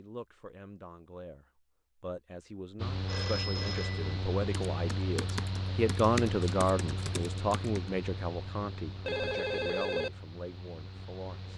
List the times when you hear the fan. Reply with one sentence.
The fan can be heard from 2.8 to 11.5 s.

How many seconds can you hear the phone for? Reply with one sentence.
The phone can be heard for 2 seconds in total.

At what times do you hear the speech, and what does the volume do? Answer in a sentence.
The speech can be heard from 0.0 to 11.5 s, getting louder then quieter.